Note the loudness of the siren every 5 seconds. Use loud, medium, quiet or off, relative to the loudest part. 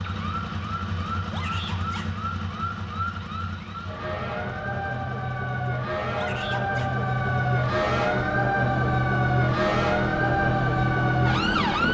medium, loud, loud.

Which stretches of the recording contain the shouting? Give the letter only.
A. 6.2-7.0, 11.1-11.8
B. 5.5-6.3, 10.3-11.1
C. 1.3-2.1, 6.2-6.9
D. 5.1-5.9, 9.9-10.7
C.